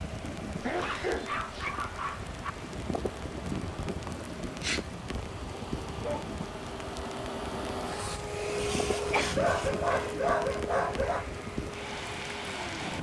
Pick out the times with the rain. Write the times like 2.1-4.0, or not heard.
0.0-12.9.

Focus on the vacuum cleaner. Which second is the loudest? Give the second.
9 s.